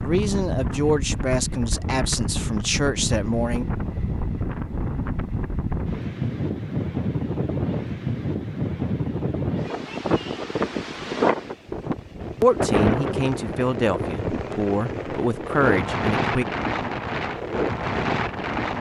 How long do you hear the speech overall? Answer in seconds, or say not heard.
8 s.